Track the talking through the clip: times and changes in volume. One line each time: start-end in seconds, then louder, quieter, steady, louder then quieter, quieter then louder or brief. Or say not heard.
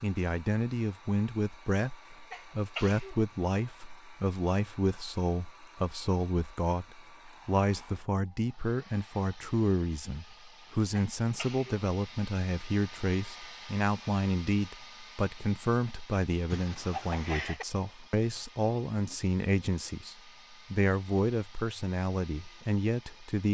0.0-23.4 steady.